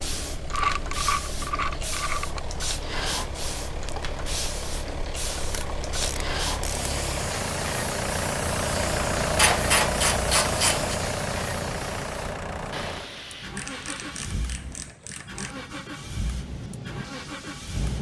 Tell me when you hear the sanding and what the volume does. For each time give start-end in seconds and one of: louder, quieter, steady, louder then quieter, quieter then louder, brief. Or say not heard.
not heard.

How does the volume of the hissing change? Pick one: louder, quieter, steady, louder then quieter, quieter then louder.
quieter.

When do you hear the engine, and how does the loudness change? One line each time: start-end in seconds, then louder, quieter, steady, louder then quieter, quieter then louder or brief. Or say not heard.
0.0-17.9 louder then quieter.